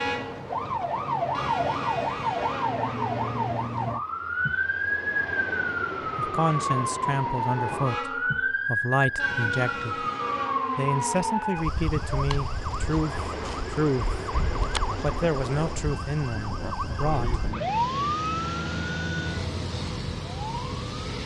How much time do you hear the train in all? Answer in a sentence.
You can hear the train for 21 seconds altogether.